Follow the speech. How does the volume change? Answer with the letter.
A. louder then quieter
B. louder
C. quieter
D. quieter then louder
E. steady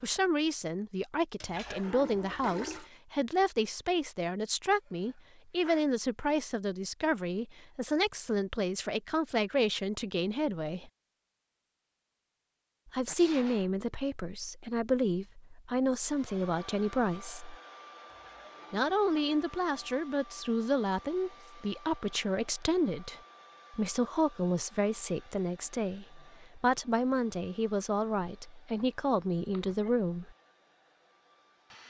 E.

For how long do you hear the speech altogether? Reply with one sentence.
You can hear the speech for 27 seconds altogether.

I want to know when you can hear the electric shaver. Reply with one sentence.
You can't hear the electric shaver here.